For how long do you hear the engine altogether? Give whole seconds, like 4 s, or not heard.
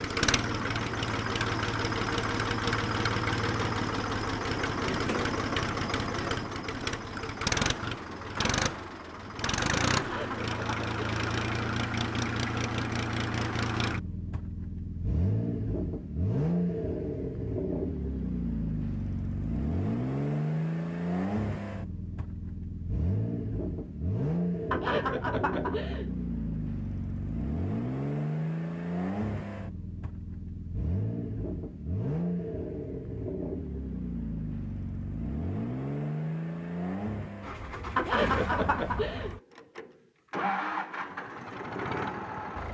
43 s.